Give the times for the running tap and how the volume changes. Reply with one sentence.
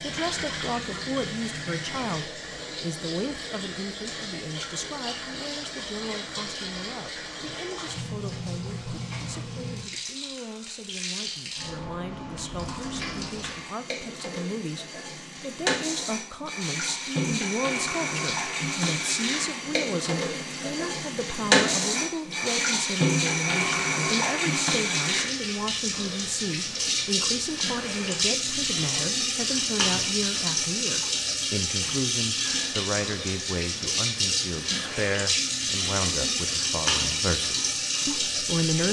The running tap can be heard from 0.0 to 38.8 s, getting louder.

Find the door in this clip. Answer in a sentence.
You can't hear the door here.